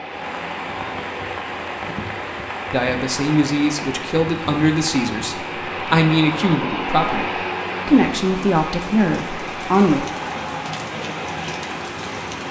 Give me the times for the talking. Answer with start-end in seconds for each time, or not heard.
2.7-10.1.